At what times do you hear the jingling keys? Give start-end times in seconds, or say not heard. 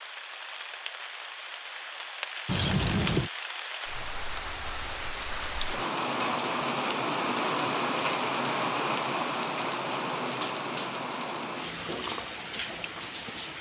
2.5-3.3.